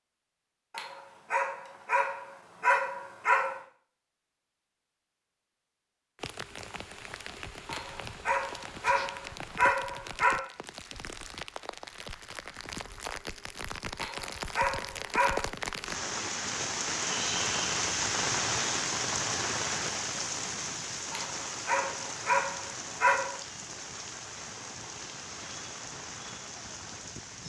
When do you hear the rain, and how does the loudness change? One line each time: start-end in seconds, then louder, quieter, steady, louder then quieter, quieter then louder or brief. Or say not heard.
6.2-27.4 louder then quieter.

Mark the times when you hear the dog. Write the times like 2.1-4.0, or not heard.
0.7-3.6, 7.7-10.4, 13.9-15.4, 21.1-23.4.